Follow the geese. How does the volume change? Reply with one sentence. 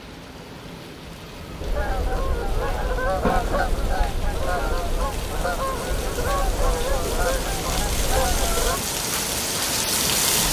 The loudness of the geese stays about the same.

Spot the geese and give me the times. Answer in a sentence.
You can hear the geese from 1.6 to 8.8 s.